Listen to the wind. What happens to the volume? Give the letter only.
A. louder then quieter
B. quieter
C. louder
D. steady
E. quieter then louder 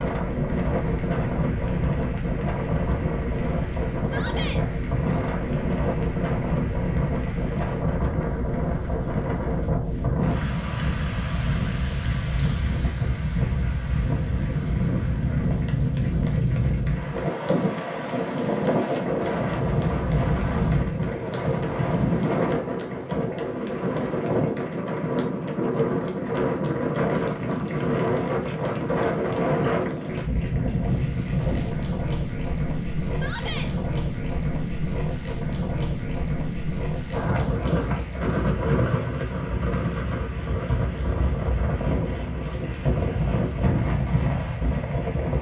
D.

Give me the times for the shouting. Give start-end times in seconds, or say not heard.
4.0-4.6, 33.1-33.7.